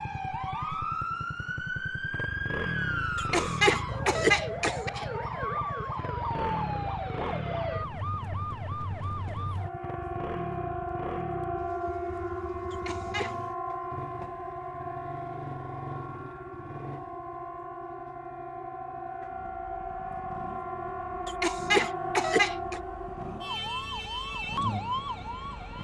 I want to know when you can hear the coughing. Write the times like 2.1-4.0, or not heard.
3.1-5.0, 12.7-13.3, 21.2-22.8.